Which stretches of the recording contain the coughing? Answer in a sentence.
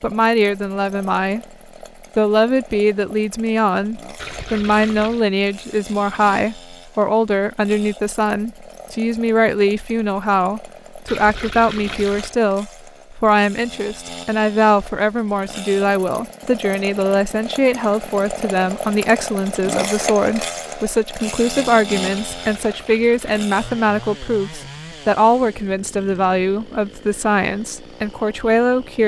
The coughing can't be heard in this clip.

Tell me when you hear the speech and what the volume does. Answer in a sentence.
The speech can be heard briefly from 0.0 to 1.4 s; and from 2.1 to 29.0 s, at a steady volume.